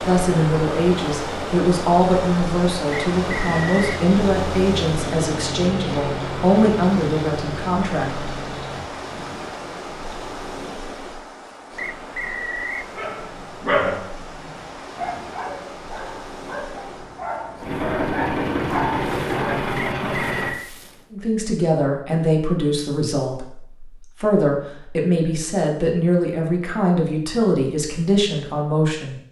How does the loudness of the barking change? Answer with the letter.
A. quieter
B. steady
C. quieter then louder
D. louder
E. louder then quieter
C.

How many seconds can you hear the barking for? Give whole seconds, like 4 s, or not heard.
7 s.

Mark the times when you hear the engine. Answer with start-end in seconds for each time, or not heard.
0.0-9.3, 17.6-20.6.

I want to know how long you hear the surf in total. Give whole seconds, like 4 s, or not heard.
21 s.